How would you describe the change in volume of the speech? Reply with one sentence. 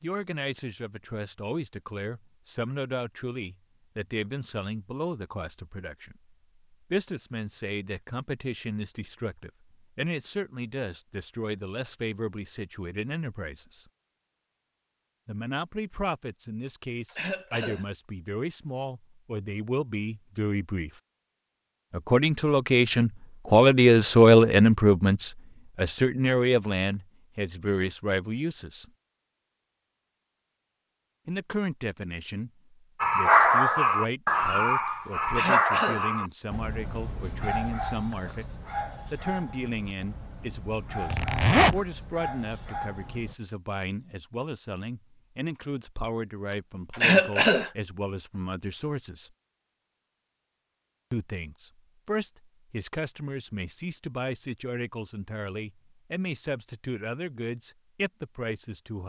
The loudness of the speech goes up, then down.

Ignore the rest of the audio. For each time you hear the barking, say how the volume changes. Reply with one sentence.
You can hear the barking from 33.0 to 43.4 s, getting quieter.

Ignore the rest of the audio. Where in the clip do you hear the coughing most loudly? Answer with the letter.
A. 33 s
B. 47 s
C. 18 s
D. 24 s
B.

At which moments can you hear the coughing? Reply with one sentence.
You can hear the coughing from 16.6 to 17.9 s, from 34.9 to 36.0 s and from 46.5 to 47.7 s.